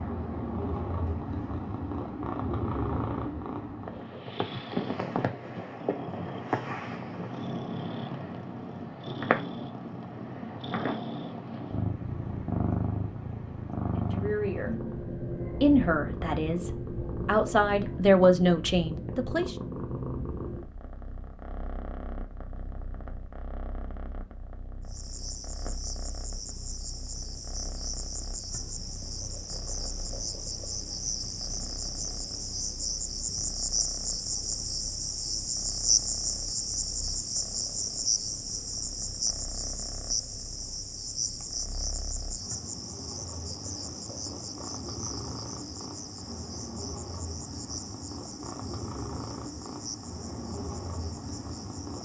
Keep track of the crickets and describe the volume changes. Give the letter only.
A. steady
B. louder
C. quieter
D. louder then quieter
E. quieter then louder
D.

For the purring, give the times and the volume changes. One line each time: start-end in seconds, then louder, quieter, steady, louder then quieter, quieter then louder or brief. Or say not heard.
0.0-52.0 quieter then louder.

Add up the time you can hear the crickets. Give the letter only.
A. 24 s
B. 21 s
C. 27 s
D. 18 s
C.